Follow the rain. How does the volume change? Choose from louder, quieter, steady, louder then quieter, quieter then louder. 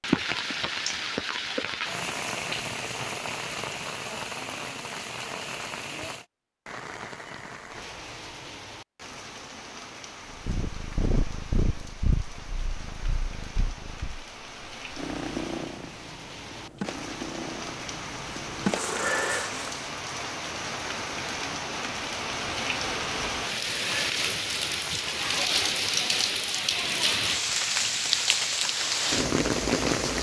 quieter then louder.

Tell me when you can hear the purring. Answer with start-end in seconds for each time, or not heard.
10.4-19.7.